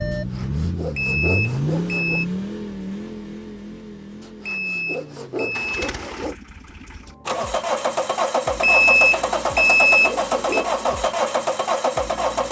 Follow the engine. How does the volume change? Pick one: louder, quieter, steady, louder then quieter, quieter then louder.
quieter then louder.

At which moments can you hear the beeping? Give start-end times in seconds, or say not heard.
0.9-2.2, 4.5-5.8, 8.6-10.7.